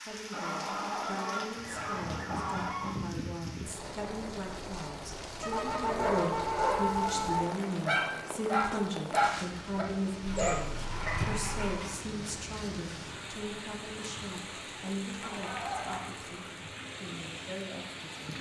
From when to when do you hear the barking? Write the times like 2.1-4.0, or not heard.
5.8-11.6.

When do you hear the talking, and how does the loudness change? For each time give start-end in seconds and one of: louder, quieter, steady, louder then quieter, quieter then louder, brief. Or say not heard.
0.0-18.3 louder then quieter.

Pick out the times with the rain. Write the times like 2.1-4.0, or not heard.
0.0-18.3.